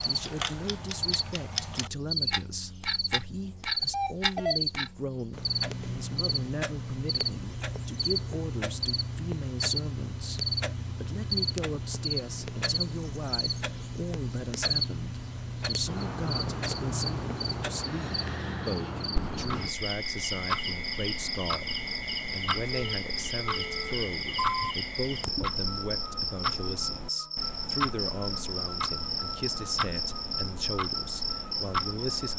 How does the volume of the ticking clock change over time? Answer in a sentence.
The loudness of the ticking clock stays about the same.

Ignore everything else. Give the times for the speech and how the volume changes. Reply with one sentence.
You can hear the speech from 0.1 to 32.3 s, at a steady volume.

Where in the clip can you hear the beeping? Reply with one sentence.
The beeping can be heard from 3.8 to 4.6 s and from 22.7 to 24.8 s.